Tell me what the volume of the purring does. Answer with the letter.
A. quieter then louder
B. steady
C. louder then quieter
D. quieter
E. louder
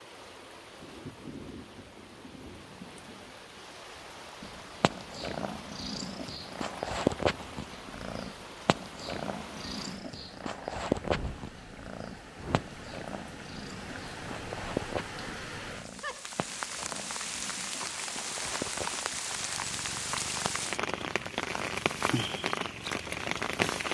D.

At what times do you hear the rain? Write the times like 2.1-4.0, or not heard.
0.0-23.8.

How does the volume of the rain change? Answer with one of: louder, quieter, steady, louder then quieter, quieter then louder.
louder.